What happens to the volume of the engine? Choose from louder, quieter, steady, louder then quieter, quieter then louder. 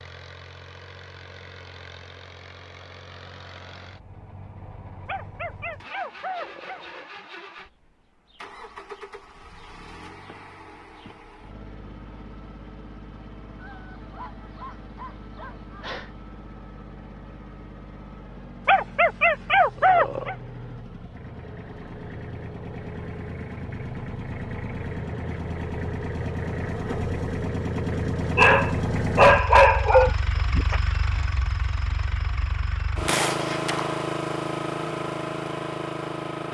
louder.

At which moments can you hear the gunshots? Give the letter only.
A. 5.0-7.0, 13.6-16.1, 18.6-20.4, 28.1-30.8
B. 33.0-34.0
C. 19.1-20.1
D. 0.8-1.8
B.